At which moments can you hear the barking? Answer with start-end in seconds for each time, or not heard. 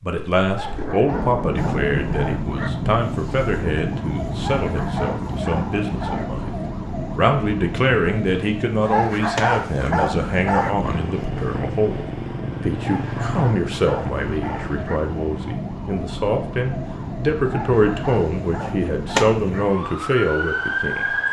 0.5-2.8, 4.3-6.3, 8.8-10.8, 12.8-15.0, 17.4-19.7.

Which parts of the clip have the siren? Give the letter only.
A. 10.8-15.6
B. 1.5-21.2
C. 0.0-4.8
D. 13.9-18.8
B.